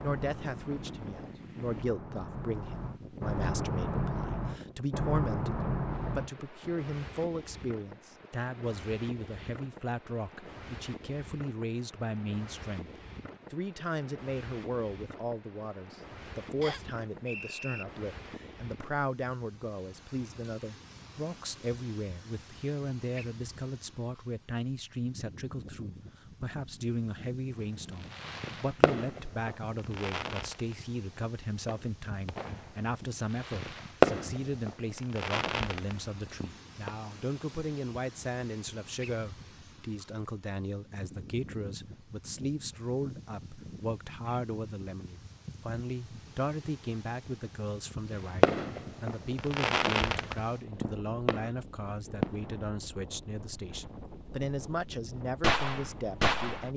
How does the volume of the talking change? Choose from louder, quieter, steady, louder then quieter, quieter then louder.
steady.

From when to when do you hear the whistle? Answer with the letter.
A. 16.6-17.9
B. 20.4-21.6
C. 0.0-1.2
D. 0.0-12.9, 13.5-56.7
A.